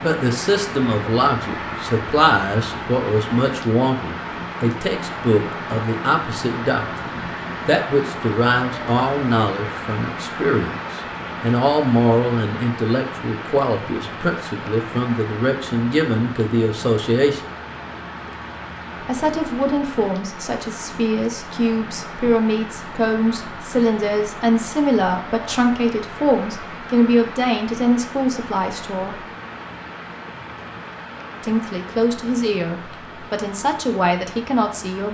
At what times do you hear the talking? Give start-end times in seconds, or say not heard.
0.0-17.4, 19.0-29.2, 31.4-35.0.